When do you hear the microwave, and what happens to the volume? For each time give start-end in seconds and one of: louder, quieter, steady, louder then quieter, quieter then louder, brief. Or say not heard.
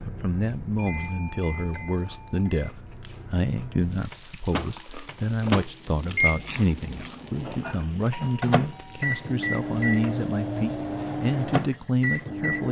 0.0-12.6 louder.